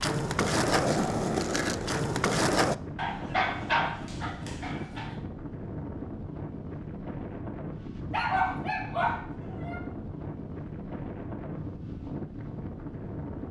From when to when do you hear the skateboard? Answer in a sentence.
You can hear the skateboard from 0.0 to 2.8 s.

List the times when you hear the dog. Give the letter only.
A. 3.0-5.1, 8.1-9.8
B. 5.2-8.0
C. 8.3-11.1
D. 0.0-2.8
A.